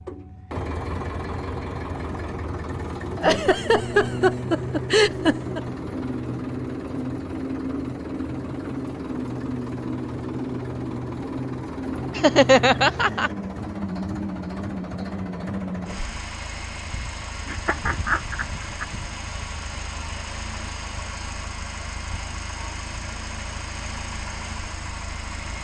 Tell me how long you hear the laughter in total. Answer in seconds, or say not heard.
5 s.